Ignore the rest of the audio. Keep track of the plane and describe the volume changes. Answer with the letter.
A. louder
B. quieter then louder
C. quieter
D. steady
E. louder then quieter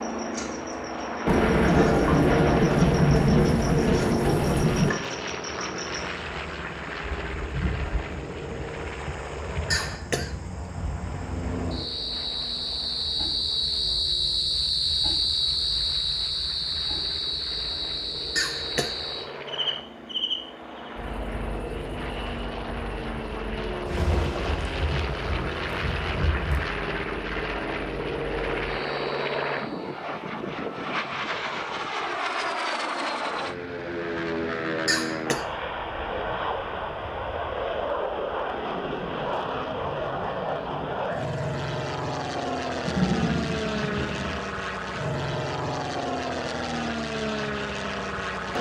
B.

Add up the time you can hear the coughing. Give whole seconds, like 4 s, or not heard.
2 s.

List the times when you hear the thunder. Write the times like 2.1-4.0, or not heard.
1.2-4.9, 23.9-26.6, 42.9-44.4.